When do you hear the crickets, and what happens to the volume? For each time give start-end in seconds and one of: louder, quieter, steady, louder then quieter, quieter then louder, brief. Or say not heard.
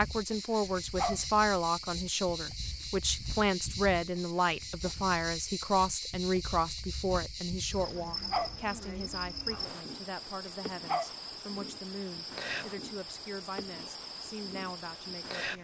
0.0-15.5 steady.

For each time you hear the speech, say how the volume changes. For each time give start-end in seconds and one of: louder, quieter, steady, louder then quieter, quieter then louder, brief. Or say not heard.
0.0-15.5 quieter.